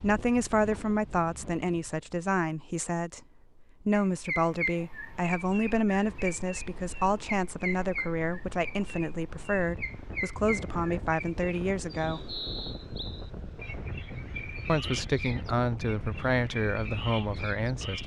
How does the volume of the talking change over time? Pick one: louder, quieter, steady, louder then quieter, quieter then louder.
steady.